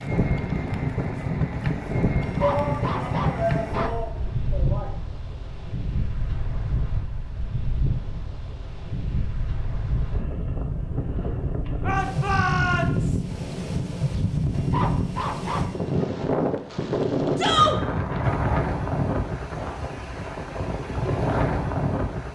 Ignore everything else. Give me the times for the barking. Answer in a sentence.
You can hear the barking from 2.2 to 4.0 s and from 14.5 to 15.9 s.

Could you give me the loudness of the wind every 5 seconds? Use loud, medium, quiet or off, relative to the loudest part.
loud, medium, loud, loud, loud.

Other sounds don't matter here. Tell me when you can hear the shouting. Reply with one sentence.
The shouting can be heard from 2.4 to 5.0 s, from 11.8 to 13.2 s and from 17.4 to 17.8 s.